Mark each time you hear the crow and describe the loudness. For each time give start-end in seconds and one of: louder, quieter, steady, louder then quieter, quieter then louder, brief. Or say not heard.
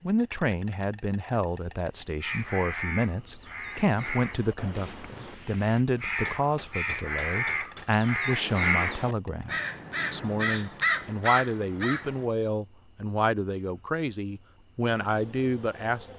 2.2-12.2 louder.